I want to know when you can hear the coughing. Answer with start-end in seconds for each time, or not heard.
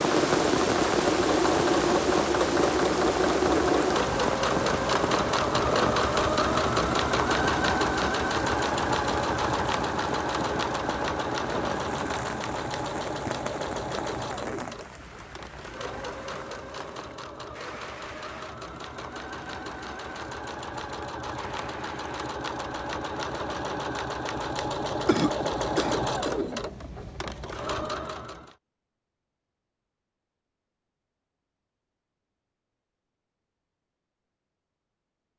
25.1-26.4.